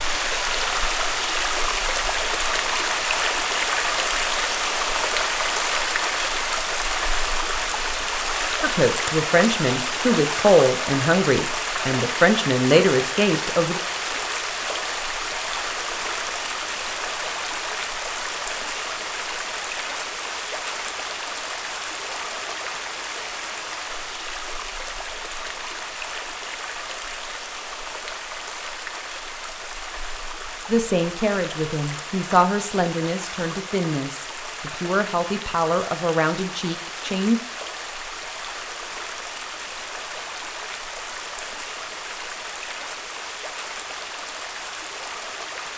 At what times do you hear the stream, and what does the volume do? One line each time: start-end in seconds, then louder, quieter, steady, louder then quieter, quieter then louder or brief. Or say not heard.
0.0-45.7 quieter.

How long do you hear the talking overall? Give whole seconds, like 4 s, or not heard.
12 s.